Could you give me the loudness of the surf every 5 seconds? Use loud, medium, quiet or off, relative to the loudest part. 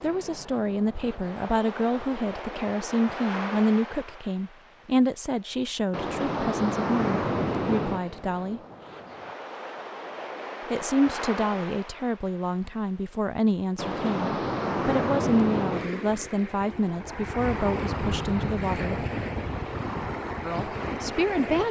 medium, loud, loud, loud, loud.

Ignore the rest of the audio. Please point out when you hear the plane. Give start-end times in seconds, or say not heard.
17.4-19.5.